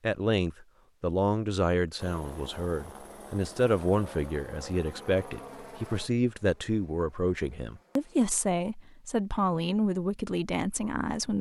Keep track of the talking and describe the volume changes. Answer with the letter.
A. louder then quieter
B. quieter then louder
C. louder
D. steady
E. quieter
D.